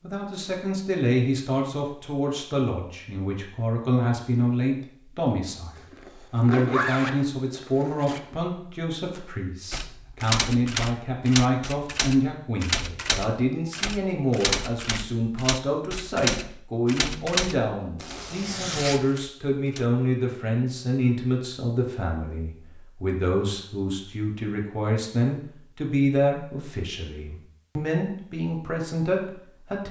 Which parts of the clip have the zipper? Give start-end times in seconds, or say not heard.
5.8-8.2, 17.9-19.1.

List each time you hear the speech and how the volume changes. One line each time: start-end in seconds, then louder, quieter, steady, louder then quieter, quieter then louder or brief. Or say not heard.
0.0-29.8 steady.